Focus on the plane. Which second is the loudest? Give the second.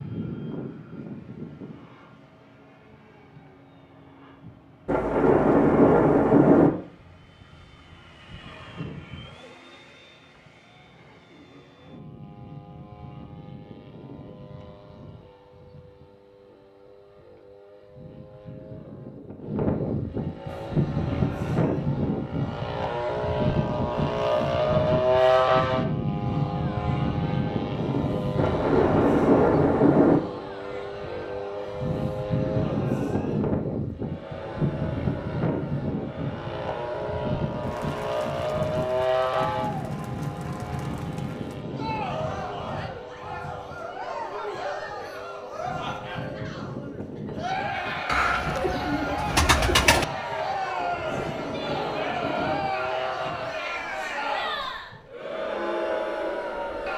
25 s.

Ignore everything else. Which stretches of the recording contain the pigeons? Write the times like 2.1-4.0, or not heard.
48.0-50.0.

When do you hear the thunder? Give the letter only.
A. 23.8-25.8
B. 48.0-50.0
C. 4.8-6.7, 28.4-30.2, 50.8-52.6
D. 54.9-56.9
C.